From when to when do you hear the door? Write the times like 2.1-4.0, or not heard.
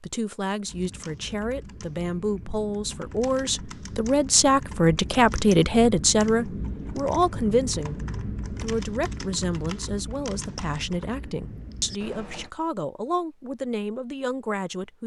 not heard.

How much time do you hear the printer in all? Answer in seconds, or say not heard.
not heard.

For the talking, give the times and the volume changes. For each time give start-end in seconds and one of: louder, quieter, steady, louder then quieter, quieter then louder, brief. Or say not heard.
0.0-15.0 louder then quieter.